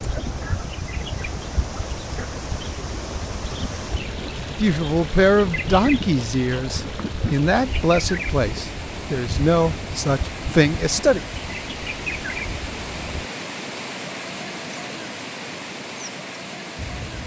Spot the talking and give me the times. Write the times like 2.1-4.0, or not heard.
4.5-11.2.